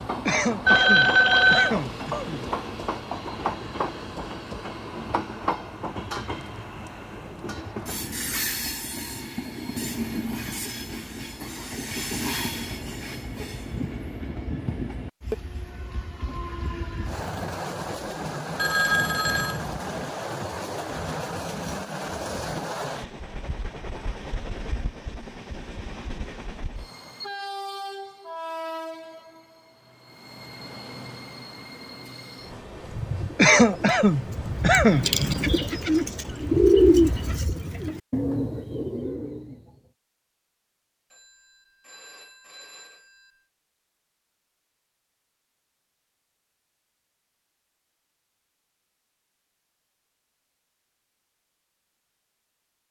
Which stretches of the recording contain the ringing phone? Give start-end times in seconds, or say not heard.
0.7-1.8, 18.6-19.6, 41.1-43.3.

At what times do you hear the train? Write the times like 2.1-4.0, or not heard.
0.0-37.4.